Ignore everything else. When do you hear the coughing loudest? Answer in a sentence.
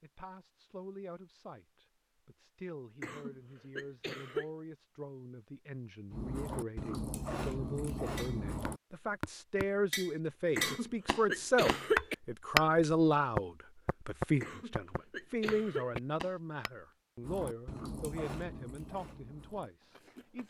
The loudest moment of the coughing is at 12 seconds.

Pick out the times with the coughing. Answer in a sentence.
You can hear the coughing from 3.0 to 4.5 s, from 10.6 to 12.2 s and from 14.4 to 16.0 s.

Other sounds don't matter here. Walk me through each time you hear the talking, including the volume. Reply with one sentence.
The talking can be heard from 0.0 to 20.4 s, getting louder then quieter.